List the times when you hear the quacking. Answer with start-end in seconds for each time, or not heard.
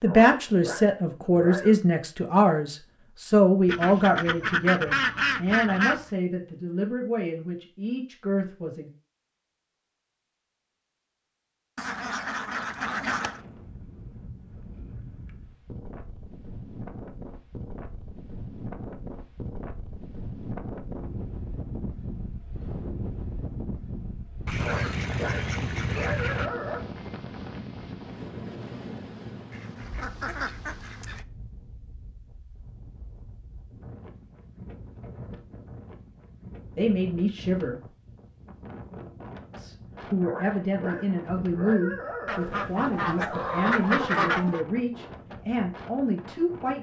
3.6-6.0, 11.8-13.4, 24.4-26.5, 29.5-31.2, 42.2-44.6.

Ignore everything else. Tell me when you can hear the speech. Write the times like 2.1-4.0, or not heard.
0.0-8.9, 36.8-37.8, 39.5-46.7.